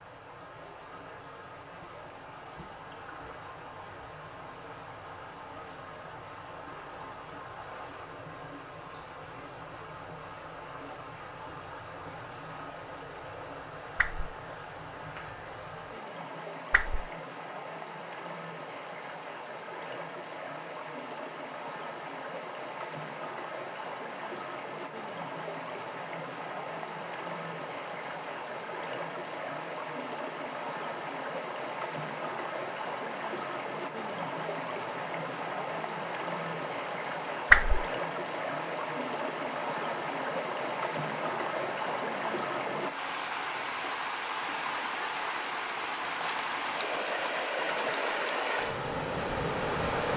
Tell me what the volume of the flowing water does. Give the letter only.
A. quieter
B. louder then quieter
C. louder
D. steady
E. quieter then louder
C.